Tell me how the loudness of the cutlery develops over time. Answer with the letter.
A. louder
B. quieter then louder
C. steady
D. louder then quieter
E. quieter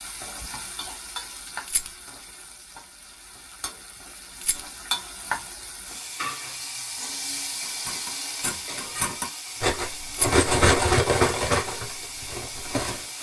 D.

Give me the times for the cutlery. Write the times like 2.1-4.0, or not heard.
7.3-13.1.